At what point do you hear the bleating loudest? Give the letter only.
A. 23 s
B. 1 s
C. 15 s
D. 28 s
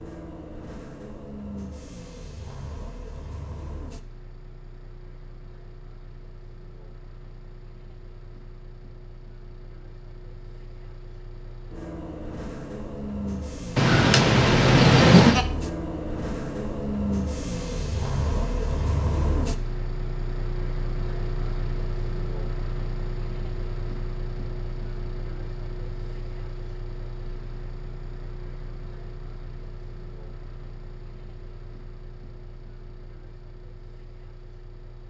C.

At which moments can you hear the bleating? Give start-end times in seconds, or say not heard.
13.8-15.4.